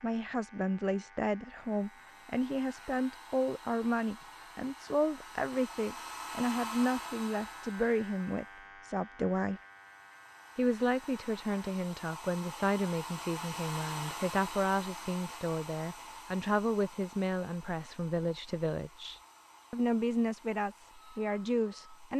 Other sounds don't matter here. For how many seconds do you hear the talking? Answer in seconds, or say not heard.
21 s.